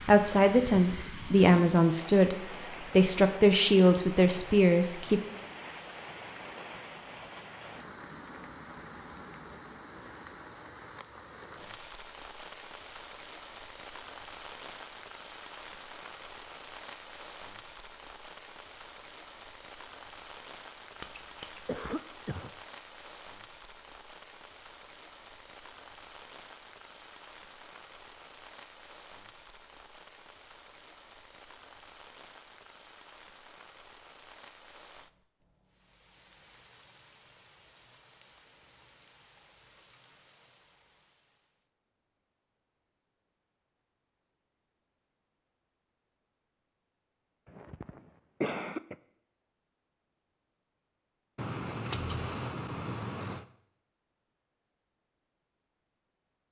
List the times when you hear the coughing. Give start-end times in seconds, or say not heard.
21.6-22.6, 47.5-49.0.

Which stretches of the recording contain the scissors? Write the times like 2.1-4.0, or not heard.
20.9-21.6, 51.4-53.4.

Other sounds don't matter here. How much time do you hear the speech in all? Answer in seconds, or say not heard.
5 s.